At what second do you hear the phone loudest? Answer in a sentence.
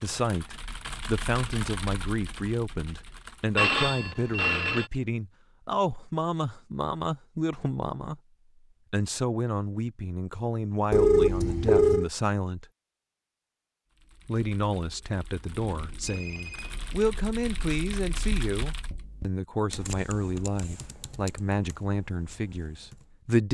The volume of the phone peaks at 11 seconds.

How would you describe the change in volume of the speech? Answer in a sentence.
The volume of the speech stays about the same.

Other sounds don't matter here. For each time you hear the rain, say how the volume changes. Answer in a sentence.
The rain can't be heard in this clip.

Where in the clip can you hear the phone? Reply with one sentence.
You can hear the phone from 3.5 to 4.9 s, from 10.9 to 12.1 s and from 16.0 to 17.0 s.